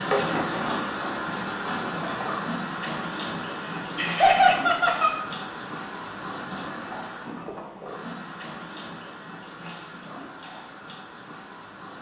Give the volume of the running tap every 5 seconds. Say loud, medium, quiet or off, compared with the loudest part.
loud, medium, quiet.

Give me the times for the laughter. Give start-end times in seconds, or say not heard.
3.4-5.1.